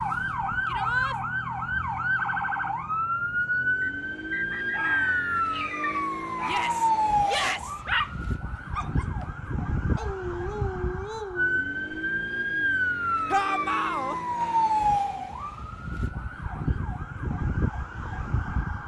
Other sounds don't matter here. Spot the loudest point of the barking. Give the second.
8 s.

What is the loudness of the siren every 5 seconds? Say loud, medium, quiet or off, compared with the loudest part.
loud, loud, loud, medium.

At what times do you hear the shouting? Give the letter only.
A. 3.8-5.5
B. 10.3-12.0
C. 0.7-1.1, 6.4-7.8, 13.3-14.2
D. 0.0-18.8
C.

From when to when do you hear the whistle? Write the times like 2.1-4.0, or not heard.
3.8-5.5.